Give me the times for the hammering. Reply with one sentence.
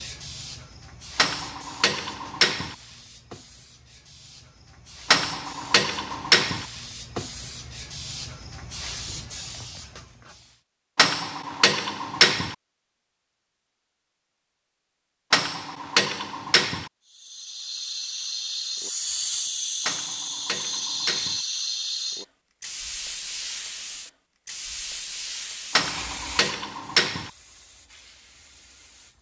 The hammering can be heard from 1.1 to 2.8 s, from 5.1 to 6.7 s, from 10.9 to 12.6 s, from 15.3 to 16.9 s, from 19.9 to 21.4 s and from 25.8 to 27.3 s.